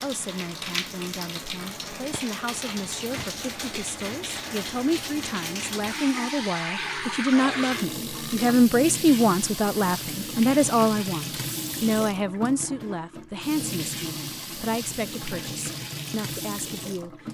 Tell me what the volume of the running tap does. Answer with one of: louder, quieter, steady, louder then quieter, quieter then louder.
steady.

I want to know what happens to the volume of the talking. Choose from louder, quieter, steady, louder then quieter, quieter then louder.
louder then quieter.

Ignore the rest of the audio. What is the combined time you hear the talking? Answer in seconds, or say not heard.
17 s.